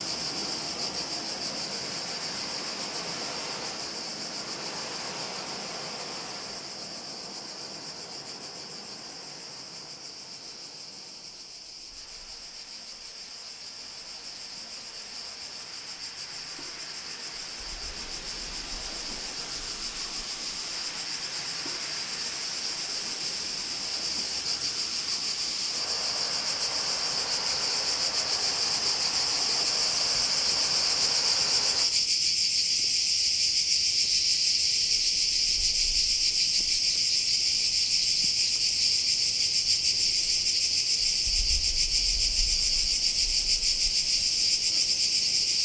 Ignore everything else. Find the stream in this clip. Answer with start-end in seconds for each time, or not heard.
0.0-31.9.